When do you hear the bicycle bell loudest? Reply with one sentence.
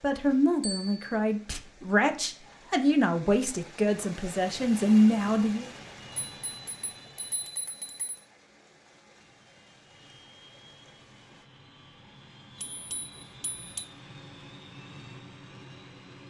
The loudest moment of the bicycle bell is at 1 second.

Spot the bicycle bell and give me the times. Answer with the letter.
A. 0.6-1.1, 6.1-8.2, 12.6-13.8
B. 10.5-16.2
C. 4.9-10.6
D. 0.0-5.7
A.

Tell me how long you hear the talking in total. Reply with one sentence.
You can hear the talking for 6 seconds altogether.